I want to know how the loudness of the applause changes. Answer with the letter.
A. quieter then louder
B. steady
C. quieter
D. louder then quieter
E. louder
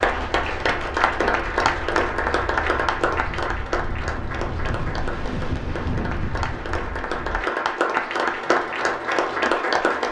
A.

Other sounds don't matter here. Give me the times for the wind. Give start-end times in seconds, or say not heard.
0.0-7.4.